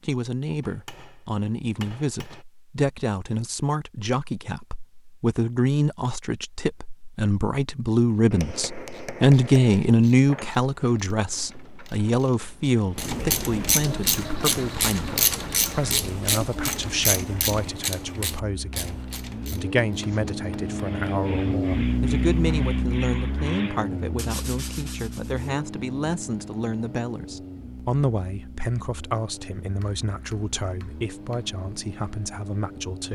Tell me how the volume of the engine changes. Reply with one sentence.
The loudness of the engine goes up, then down.